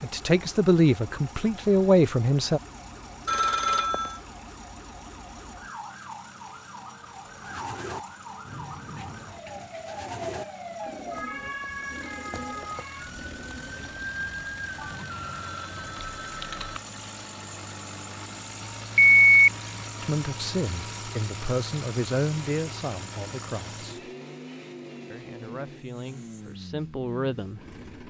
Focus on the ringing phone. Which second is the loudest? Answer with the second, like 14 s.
19 s.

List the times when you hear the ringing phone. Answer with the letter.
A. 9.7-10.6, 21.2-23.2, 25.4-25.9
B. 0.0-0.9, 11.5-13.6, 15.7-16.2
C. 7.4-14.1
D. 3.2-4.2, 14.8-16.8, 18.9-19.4
D.